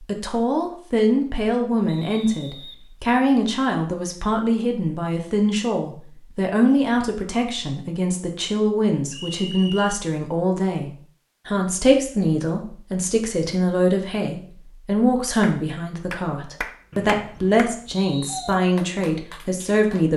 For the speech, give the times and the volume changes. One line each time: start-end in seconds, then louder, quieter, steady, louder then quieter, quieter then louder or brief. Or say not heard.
0.0-20.1 steady.